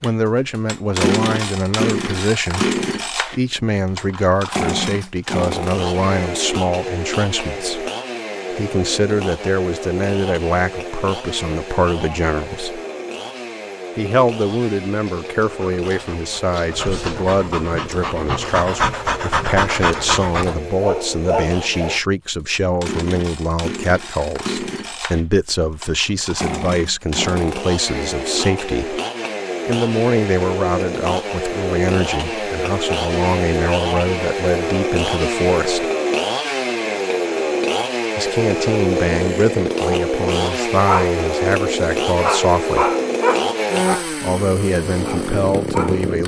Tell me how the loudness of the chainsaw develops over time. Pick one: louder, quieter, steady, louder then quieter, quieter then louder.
quieter then louder.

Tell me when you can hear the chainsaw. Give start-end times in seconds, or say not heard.
0.0-46.2.